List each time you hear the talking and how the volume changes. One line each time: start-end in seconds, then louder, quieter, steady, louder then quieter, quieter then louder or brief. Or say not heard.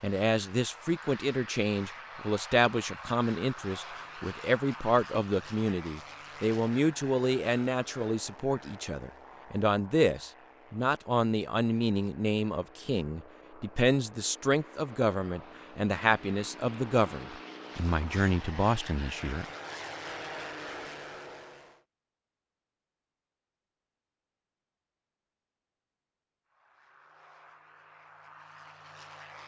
0.0-19.4 steady.